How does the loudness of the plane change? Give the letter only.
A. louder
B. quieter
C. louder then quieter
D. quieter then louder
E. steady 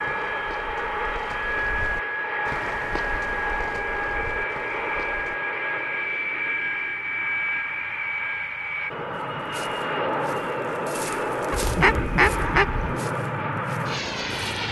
E.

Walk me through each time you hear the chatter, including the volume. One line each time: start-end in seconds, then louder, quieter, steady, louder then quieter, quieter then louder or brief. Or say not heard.
not heard.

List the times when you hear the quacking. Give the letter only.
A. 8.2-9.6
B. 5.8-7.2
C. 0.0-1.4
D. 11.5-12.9
D.